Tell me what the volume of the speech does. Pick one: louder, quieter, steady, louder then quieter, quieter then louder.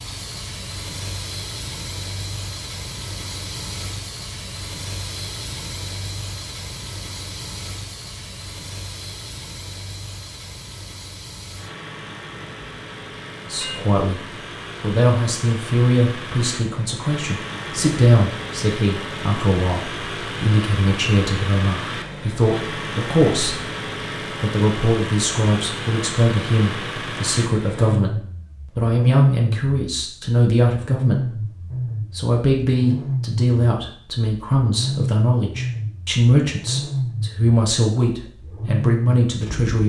steady.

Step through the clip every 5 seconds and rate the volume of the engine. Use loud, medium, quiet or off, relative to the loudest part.
medium, medium, medium, medium, loud, loud, loud, loud.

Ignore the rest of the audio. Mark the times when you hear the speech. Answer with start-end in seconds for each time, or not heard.
13.4-31.4, 32.1-39.8.